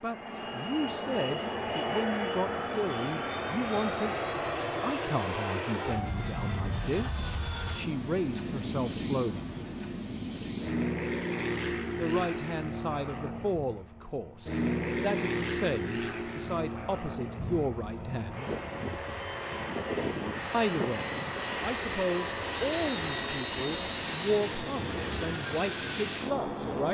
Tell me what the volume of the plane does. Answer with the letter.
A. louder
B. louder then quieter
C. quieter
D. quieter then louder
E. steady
E.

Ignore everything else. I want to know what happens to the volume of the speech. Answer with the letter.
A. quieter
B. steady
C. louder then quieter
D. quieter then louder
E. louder
B.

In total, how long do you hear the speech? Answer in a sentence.
The speech can be heard for 22 seconds in total.